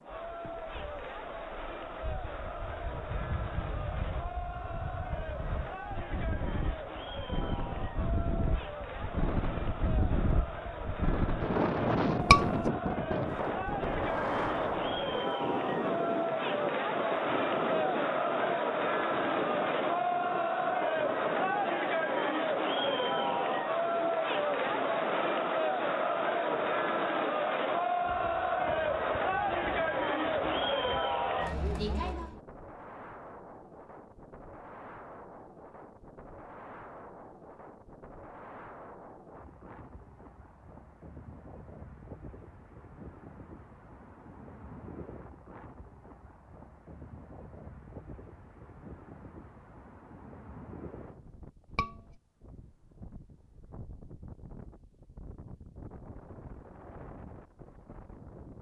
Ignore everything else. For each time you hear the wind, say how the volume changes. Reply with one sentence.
You can hear the wind from 0.0 to 58.5 s, getting quieter.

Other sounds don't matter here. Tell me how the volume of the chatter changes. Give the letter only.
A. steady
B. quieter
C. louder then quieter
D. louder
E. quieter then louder
D.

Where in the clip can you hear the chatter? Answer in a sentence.
You can hear the chatter from 0.0 to 32.4 s.